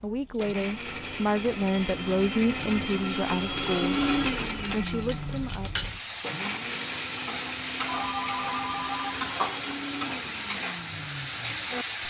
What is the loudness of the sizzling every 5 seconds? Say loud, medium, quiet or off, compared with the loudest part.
quiet, loud, loud.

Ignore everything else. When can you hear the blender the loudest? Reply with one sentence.
The loudest moment of the blender is at 4 seconds.